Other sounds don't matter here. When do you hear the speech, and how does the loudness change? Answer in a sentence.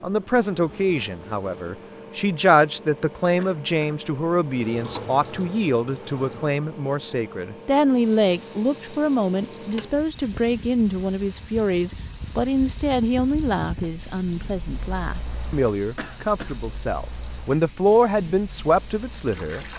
You can hear the speech from 0.0 to 19.7 s, at a steady volume.